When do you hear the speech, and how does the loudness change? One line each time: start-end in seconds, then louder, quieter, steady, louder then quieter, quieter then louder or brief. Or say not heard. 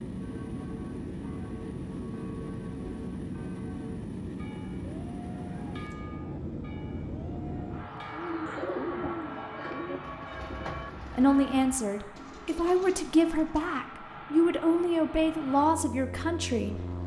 11.2-17.0 steady.